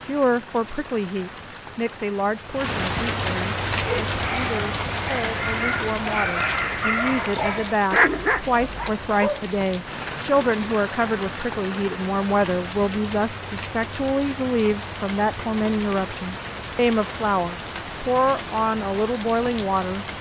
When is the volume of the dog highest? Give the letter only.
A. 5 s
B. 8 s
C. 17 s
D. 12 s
B.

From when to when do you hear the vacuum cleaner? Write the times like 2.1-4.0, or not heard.
not heard.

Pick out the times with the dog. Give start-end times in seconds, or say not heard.
3.8-9.4.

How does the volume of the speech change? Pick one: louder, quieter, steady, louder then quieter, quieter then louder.
steady.